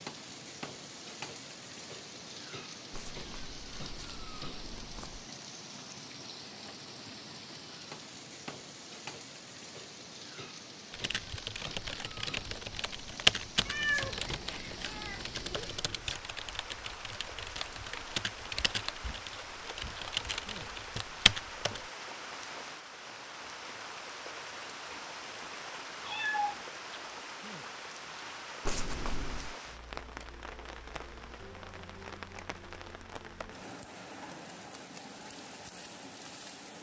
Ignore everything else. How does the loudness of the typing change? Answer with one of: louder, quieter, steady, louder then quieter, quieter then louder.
quieter then louder.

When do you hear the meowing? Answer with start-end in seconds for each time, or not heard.
13.7-15.8, 26.0-26.6.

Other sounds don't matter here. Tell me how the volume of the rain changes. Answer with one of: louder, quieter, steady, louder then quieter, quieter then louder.
steady.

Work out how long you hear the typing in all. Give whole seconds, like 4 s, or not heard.
11 s.